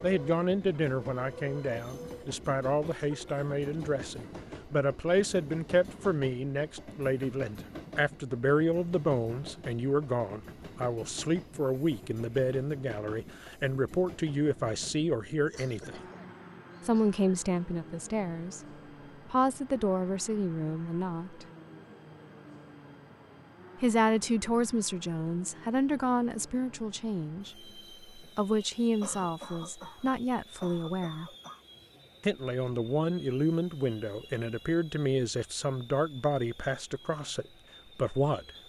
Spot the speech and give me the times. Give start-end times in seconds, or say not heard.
0.0-16.0, 16.9-18.6, 19.2-21.4, 23.8-31.3, 32.2-38.5.